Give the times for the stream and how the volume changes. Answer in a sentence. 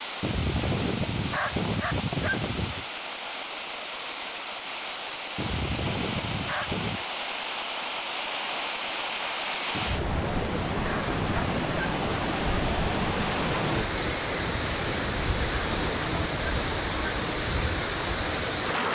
You can hear the stream from 0.0 to 18.8 s, getting louder.